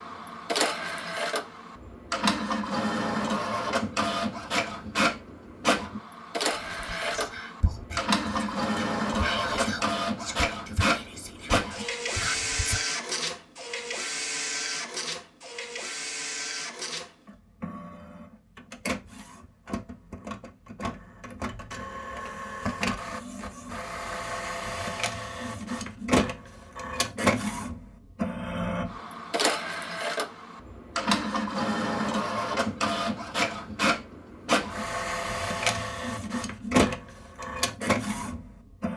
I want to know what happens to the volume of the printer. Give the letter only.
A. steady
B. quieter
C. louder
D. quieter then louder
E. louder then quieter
D.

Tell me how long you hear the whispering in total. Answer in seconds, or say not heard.
6 s.